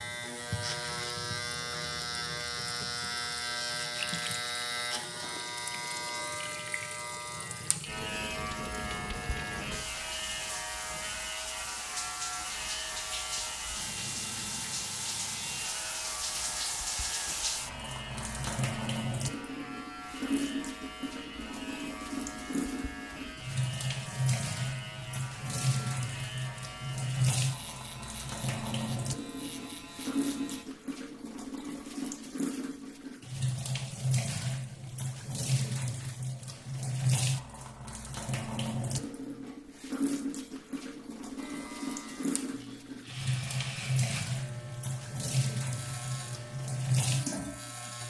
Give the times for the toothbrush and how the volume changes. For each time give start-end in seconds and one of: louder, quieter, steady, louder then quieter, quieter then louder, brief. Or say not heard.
not heard.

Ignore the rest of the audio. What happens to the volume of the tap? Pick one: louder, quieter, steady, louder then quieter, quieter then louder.
louder.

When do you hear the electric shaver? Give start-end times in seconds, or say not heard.
0.0-30.6, 41.4-48.0.